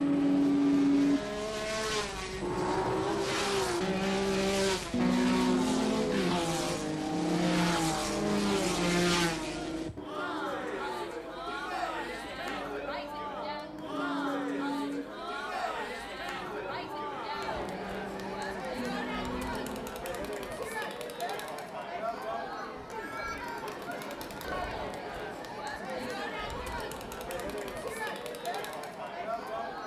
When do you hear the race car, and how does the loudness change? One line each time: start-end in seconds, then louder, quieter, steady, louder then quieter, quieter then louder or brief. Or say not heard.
0.0-19.9 quieter.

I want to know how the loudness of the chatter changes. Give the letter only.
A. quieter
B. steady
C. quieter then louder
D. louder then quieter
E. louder
B.